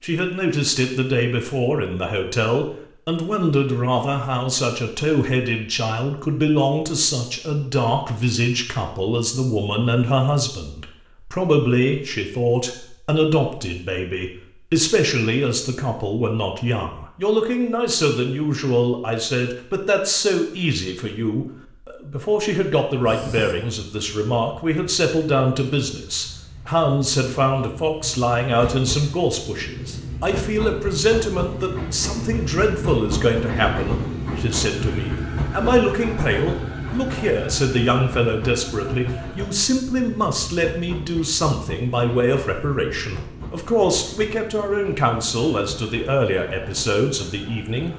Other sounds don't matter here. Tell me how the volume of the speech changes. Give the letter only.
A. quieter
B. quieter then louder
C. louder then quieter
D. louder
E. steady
E.